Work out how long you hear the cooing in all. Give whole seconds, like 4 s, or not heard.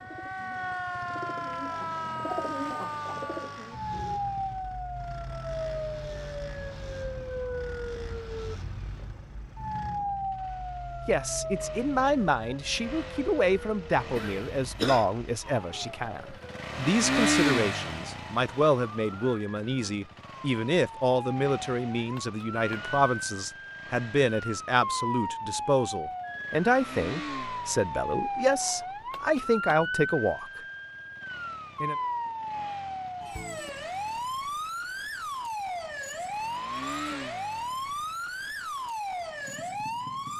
4 s.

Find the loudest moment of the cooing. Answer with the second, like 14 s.
2 s.